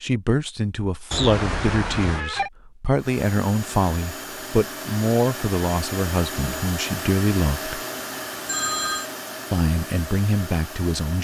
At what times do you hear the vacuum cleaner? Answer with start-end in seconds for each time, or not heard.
3.0-11.2.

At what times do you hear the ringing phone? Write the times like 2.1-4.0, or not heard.
1.1-2.5, 8.4-9.1.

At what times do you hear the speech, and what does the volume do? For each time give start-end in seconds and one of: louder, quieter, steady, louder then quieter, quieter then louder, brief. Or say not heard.
0.0-7.8 steady
9.5-11.2 brief.